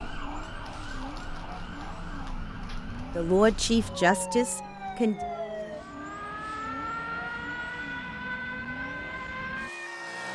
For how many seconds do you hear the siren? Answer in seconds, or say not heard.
10 s.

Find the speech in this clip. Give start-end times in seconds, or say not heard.
3.1-5.2.